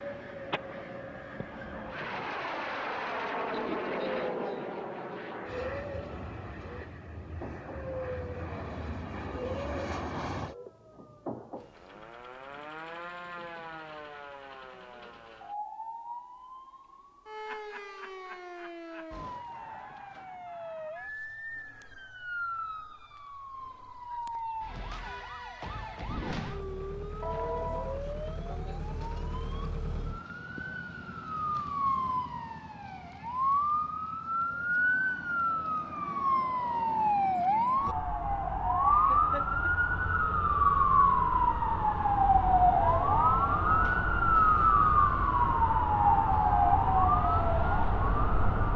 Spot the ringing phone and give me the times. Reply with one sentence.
The ringing phone can be heard from 27.2 to 28.0 s.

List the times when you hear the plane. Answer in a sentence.
The plane can be heard from 0.0 to 10.6 s.